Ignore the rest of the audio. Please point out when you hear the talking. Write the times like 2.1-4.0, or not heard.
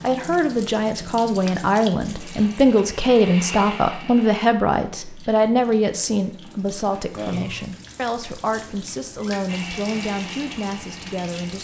0.0-11.5.